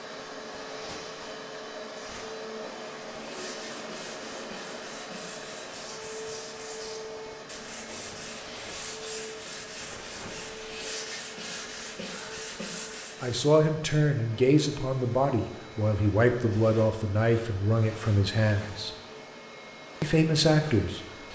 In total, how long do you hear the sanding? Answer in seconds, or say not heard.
10 s.